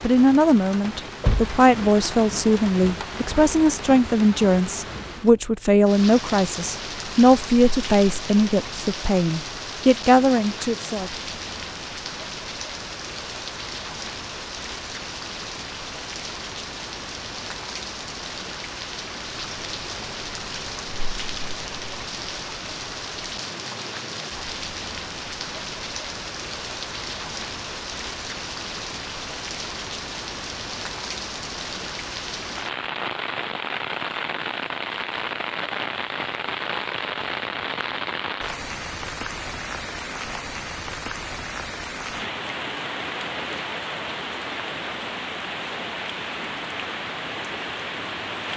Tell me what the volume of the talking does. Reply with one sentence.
The loudness of the talking stays about the same.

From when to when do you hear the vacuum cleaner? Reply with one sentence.
You can't hear the vacuum cleaner here.